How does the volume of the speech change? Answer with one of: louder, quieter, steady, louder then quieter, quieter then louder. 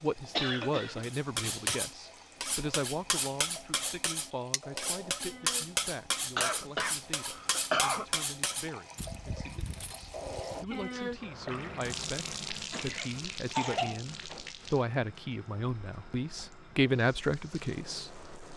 quieter then louder.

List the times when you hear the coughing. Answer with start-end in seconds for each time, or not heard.
0.3-1.8, 6.3-8.1, 12.5-14.0.